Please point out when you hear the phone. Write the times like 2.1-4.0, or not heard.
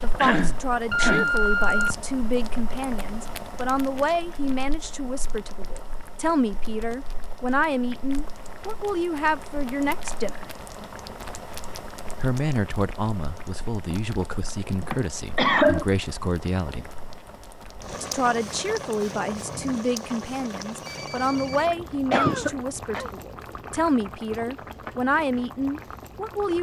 0.9-2.0, 20.6-21.6.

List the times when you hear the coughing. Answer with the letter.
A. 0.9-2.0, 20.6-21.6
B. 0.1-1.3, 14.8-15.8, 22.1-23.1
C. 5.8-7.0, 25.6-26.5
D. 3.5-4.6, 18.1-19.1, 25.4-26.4
B.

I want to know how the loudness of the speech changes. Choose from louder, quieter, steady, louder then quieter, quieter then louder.
steady.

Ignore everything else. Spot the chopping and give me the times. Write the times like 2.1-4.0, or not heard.
not heard.